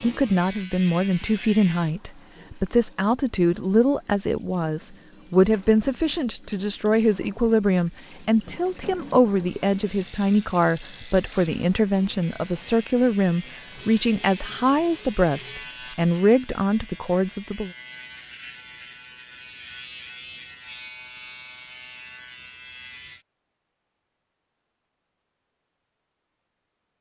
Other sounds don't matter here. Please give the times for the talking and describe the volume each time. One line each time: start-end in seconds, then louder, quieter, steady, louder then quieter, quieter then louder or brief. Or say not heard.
0.0-17.7 steady.